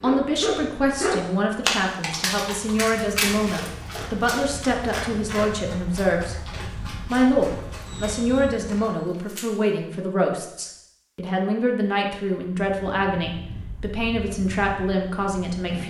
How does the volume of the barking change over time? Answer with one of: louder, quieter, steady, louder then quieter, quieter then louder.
quieter.